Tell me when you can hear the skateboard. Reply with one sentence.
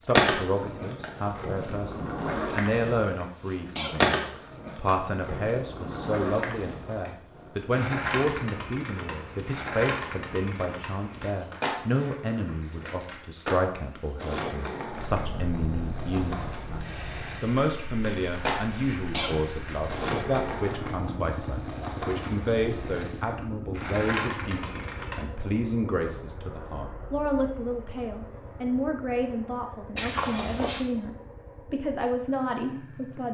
The skateboard can be heard from 0.1 to 25.2 s.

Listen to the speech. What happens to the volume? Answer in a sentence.
The loudness of the speech stays about the same.